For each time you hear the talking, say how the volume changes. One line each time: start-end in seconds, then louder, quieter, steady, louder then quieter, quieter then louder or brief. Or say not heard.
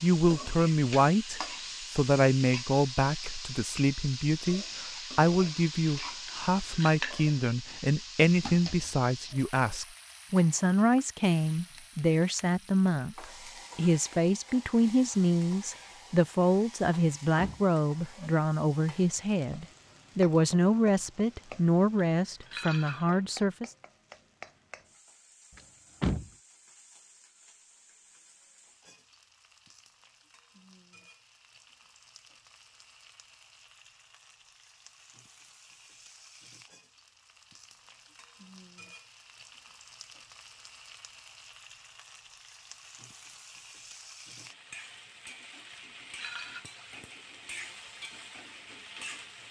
0.0-23.7 steady.